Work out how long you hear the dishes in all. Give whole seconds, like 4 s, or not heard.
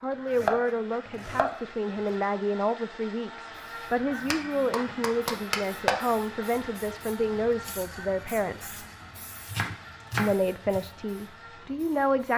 not heard.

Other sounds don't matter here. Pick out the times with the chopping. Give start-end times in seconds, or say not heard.
0.3-1.6, 4.3-6.0, 9.4-10.8.